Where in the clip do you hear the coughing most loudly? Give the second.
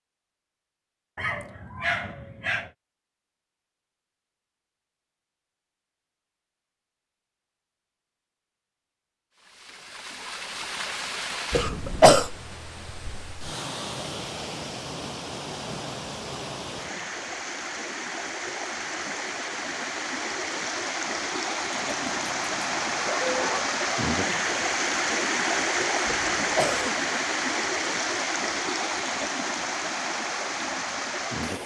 12 s.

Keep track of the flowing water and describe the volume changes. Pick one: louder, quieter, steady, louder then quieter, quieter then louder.
louder.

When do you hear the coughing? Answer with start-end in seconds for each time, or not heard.
11.5-12.3, 26.1-26.9.